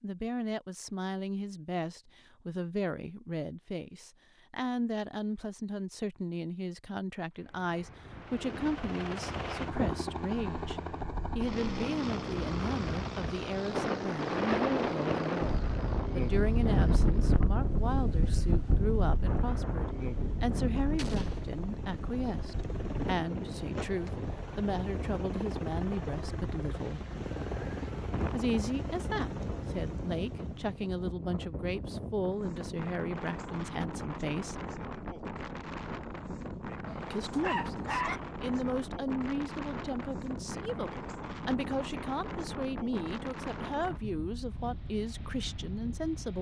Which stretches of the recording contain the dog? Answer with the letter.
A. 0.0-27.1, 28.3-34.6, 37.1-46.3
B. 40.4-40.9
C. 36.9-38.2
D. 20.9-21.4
C.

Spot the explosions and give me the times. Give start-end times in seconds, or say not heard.
20.9-21.4.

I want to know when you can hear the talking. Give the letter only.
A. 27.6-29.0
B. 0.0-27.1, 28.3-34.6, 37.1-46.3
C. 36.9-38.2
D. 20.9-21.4
B.